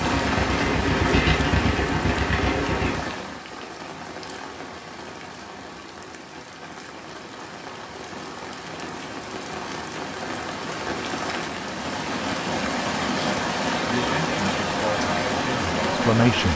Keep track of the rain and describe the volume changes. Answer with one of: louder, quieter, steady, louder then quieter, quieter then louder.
quieter then louder.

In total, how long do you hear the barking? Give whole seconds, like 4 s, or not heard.
not heard.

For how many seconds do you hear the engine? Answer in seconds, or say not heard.
3 s.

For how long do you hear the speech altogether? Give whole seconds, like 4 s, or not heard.
3 s.